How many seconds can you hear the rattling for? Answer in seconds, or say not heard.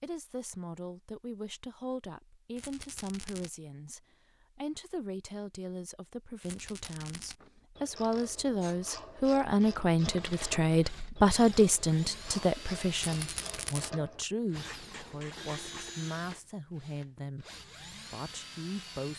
3 s.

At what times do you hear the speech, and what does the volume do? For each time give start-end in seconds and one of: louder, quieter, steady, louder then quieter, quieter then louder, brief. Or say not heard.
0.0-19.1 louder then quieter.